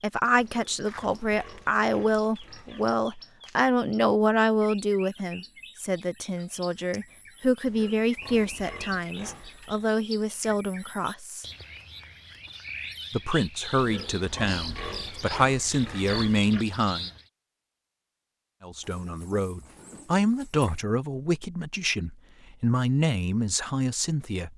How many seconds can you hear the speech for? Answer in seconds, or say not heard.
21 s.